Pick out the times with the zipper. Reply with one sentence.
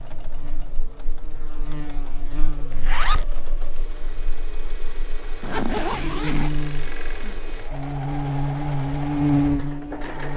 You can hear the zipper from 2.7 to 3.2 s and from 5.4 to 6.5 s.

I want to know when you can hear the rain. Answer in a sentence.
You can't hear the rain here.